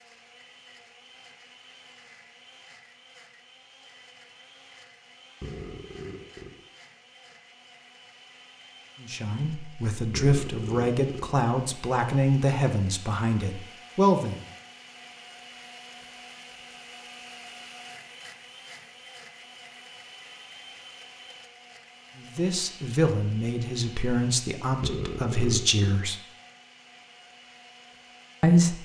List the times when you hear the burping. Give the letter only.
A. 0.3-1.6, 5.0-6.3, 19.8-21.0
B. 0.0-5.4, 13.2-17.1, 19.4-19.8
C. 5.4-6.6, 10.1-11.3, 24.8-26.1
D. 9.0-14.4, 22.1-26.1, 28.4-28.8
C.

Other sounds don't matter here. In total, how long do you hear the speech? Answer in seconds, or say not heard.
10 s.